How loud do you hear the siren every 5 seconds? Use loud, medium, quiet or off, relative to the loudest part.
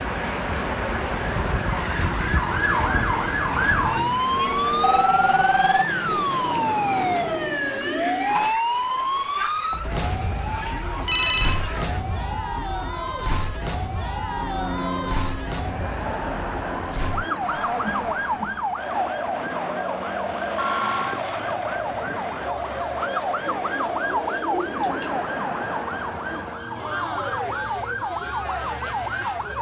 loud, loud, medium, medium, medium, medium.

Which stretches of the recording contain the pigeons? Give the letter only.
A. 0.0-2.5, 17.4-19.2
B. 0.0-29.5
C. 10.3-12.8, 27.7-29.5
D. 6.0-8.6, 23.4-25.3
D.